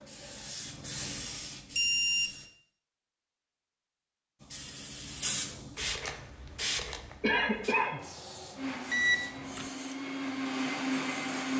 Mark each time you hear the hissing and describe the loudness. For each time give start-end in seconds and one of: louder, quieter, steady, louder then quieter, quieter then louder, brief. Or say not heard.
0.0-2.5 brief
4.4-11.5 quieter.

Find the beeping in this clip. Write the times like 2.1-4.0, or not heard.
1.8-2.3, 8.9-9.7.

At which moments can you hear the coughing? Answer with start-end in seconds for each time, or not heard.
7.2-8.0.